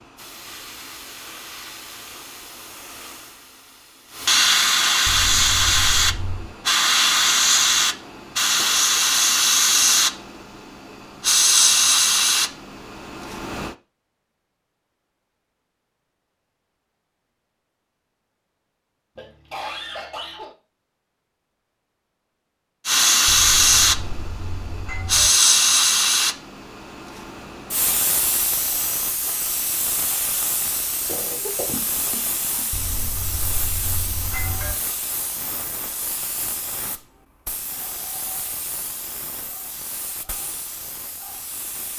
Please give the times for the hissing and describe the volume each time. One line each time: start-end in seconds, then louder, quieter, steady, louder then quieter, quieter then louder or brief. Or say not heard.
0.0-13.8 louder
22.9-41.9 quieter.